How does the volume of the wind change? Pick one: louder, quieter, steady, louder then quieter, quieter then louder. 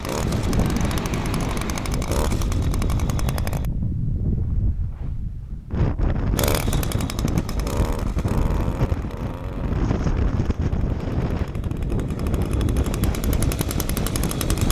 steady.